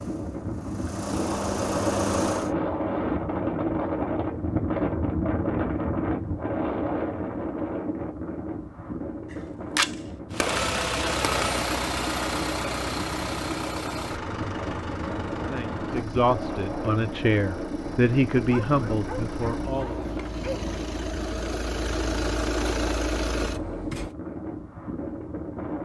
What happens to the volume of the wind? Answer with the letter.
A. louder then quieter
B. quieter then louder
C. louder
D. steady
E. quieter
E.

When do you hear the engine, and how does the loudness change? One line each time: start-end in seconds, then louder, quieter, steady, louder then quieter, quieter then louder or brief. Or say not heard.
0.0-2.5 brief
10.3-24.1 quieter then louder.